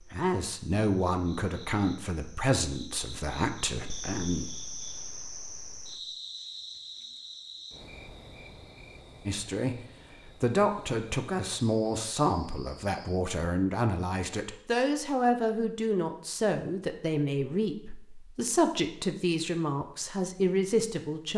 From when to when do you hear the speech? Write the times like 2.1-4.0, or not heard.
0.1-4.5, 9.2-21.3.